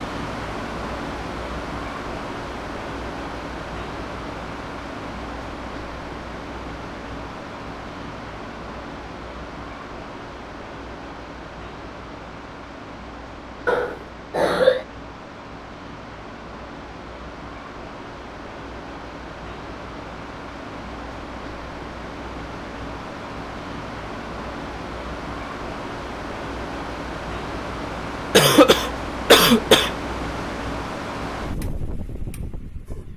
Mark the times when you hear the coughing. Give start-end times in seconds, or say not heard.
13.7-14.8, 28.3-29.9.